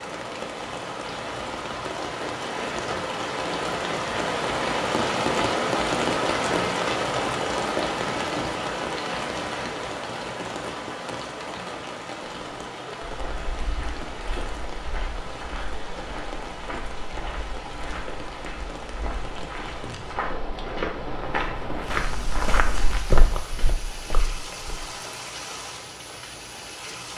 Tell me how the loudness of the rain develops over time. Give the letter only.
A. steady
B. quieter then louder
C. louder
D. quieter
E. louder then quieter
D.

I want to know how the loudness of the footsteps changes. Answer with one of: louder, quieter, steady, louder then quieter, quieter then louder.
louder.